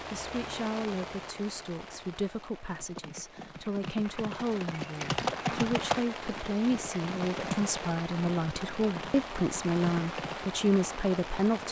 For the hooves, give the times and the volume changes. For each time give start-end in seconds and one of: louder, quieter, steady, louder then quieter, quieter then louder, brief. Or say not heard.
2.7-10.3 louder then quieter.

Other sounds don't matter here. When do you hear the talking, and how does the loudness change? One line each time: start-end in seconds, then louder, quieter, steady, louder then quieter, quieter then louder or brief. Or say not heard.
0.1-11.6 louder.